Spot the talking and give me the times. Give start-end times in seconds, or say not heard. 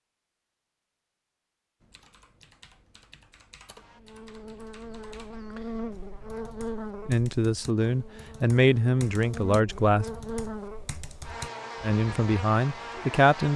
7.0-10.1, 11.8-13.5.